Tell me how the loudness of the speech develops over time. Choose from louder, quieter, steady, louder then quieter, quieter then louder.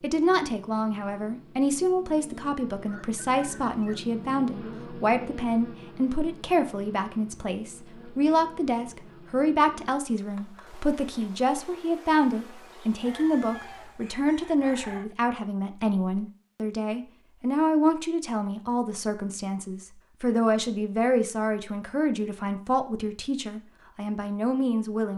steady.